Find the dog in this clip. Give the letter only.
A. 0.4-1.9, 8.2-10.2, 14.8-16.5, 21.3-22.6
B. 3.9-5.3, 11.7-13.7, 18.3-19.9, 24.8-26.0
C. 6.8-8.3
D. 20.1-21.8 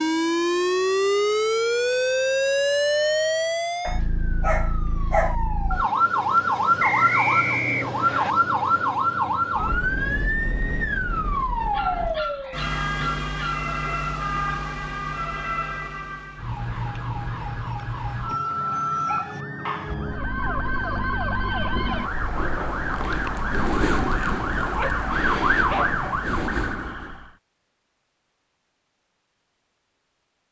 B.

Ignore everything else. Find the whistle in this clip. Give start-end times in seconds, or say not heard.
6.8-8.3.